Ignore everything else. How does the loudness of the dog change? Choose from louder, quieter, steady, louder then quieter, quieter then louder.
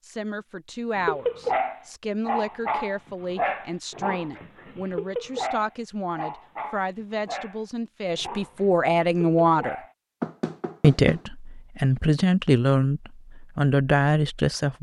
quieter.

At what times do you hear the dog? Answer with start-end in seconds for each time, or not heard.
0.9-9.9.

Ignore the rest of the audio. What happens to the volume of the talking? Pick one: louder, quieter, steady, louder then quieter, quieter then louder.
louder.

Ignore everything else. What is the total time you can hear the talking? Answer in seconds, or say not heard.
14 s.